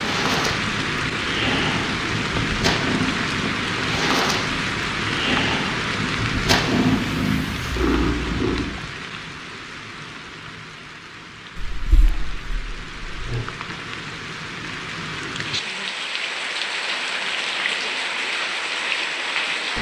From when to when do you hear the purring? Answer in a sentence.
You can hear the purring from 0.0 to 8.8 s and from 11.6 to 13.4 s.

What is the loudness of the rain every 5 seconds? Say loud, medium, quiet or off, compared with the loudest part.
loud, loud, medium, loud.